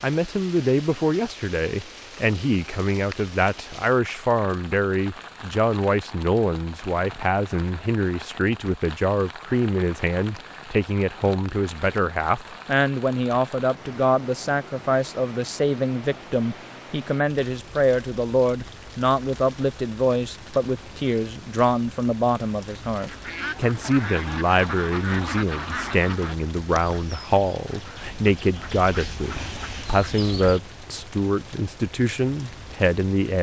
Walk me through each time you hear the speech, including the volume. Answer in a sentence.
You can hear the speech from 0.0 to 33.3 s, at a steady volume.